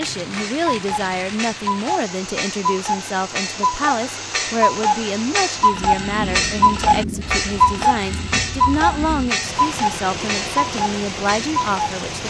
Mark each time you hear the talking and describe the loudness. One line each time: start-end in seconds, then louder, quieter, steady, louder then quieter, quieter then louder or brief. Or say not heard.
0.0-12.2 steady.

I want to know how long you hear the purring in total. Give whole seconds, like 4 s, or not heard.
not heard.